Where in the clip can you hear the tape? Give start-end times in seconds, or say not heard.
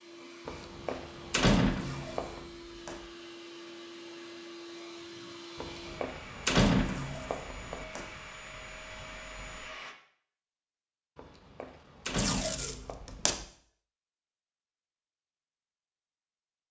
1.8-3.0, 6.8-8.1, 12.1-13.4.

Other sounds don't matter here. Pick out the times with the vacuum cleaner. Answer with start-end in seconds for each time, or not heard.
0.0-9.9.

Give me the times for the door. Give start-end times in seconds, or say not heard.
0.5-2.4, 5.5-7.8, 11.2-13.4.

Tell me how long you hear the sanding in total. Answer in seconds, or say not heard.
not heard.